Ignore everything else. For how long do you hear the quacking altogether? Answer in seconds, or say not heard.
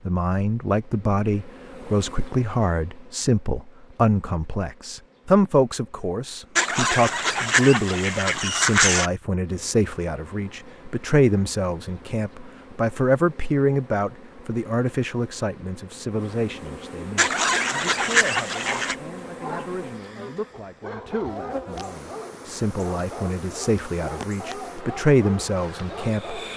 4 s.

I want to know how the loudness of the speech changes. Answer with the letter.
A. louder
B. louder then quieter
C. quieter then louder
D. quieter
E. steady
C.